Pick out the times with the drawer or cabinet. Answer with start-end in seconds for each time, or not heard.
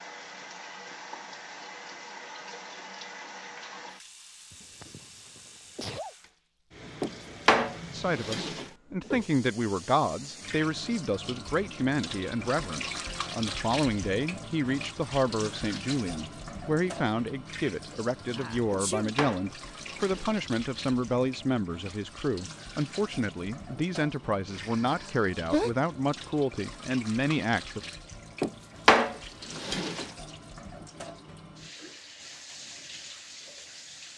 7.0-8.7, 18.7-20.4, 28.4-30.1.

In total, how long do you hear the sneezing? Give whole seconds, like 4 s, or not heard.
4 s.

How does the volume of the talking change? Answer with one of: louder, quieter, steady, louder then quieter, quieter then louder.
steady.